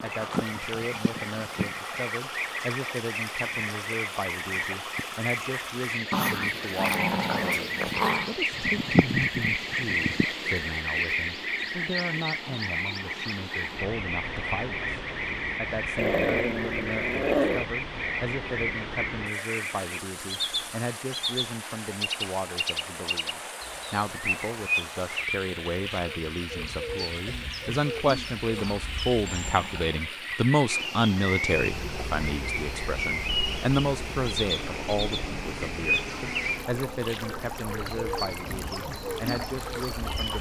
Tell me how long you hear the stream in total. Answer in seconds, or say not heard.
40 s.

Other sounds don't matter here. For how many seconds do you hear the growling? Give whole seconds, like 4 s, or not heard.
6 s.